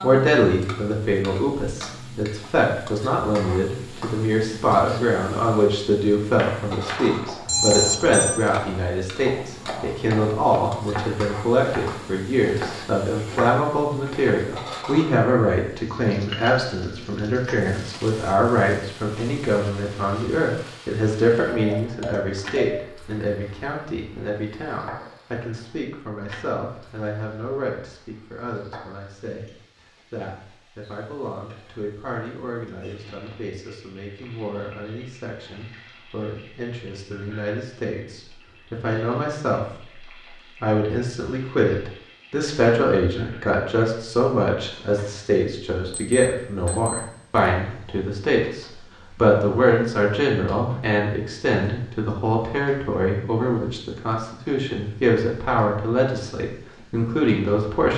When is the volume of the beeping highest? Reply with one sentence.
The volume of the beeping peaks at 8 seconds.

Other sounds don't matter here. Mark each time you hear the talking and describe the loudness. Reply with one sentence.
You can hear the talking from 0.0 to 57.9 s, getting quieter then louder.